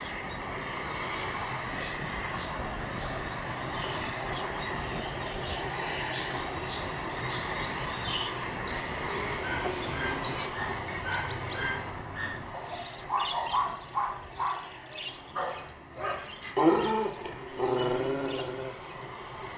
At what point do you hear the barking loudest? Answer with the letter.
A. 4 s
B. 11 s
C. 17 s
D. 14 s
C.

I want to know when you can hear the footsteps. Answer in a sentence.
You can't hear the footsteps here.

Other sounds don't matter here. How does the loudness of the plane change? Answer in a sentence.
The loudness of the plane goes down.